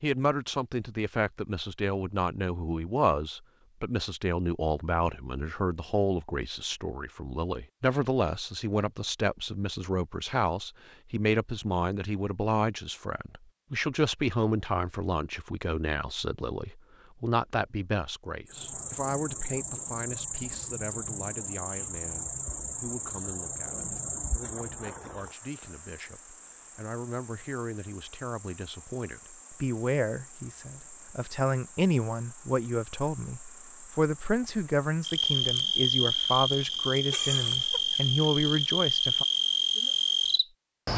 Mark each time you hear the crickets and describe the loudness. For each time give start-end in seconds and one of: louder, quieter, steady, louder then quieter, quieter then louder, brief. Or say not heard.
18.4-40.9 quieter then louder.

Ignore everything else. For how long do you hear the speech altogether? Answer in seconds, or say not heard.
39 s.